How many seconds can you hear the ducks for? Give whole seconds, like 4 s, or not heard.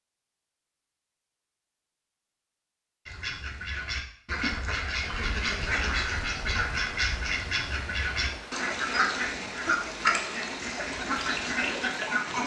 9 s.